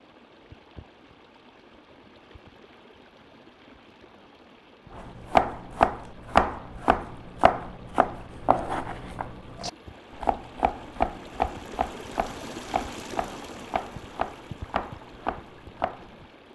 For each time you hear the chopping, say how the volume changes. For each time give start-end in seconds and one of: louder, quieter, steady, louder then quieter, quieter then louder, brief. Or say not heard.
5.0-16.2 quieter.